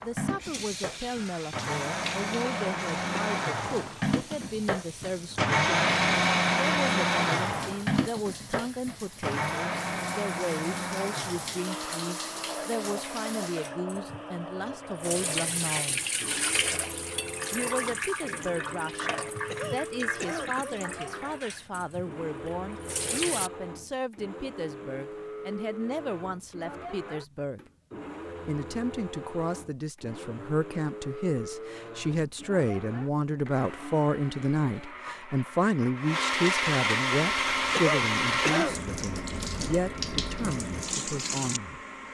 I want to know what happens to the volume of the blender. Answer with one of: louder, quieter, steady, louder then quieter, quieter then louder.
quieter then louder.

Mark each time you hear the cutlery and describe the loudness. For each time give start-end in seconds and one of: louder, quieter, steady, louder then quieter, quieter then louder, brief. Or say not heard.
not heard.